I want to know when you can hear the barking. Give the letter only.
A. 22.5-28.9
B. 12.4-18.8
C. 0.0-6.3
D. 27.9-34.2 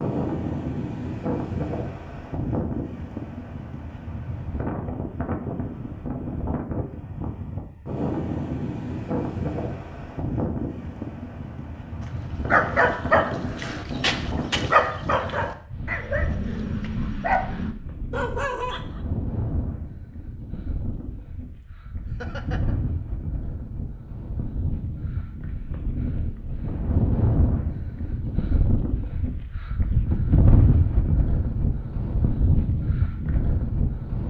B.